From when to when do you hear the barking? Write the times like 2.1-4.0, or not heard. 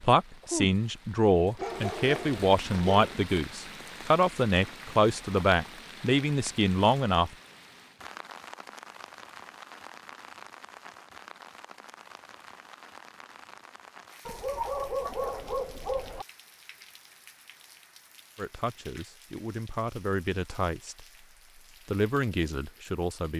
1.6-3.1, 14.2-16.2.